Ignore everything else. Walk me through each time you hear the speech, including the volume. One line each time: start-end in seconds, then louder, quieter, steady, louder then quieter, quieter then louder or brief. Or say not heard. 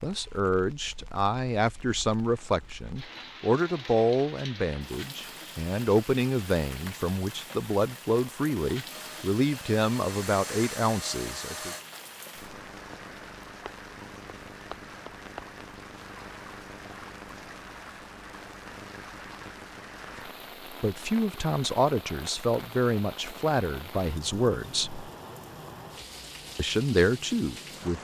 0.0-11.8 steady
20.7-25.1 steady
26.6-27.9 brief.